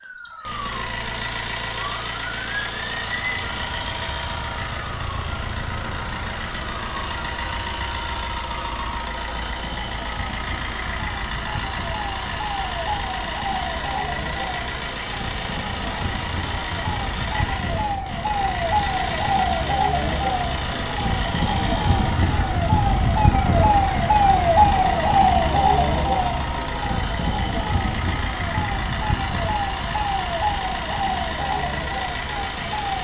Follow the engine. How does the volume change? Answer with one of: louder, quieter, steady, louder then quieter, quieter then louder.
steady.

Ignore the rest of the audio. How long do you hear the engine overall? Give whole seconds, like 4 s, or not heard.
33 s.